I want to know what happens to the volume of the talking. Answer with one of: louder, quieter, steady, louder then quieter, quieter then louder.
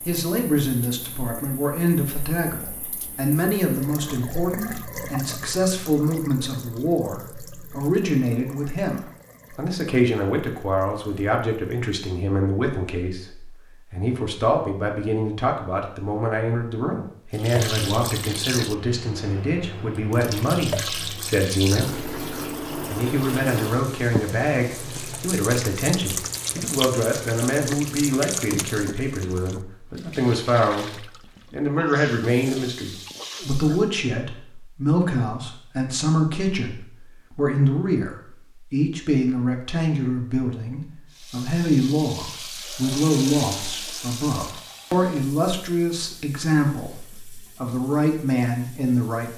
steady.